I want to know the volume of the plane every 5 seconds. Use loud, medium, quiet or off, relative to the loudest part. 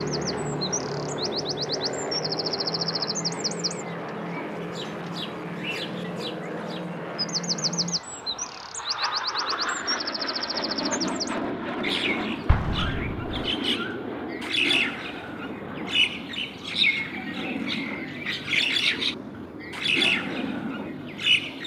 loud, loud, loud, medium, loud.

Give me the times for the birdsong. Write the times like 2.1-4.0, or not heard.
0.0-21.6.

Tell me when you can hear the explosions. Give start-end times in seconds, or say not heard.
12.4-13.4.